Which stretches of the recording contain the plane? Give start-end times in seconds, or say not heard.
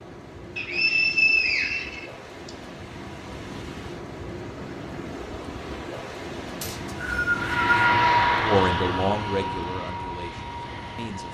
7.3-11.2.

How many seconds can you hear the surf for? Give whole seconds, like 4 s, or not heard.
11 s.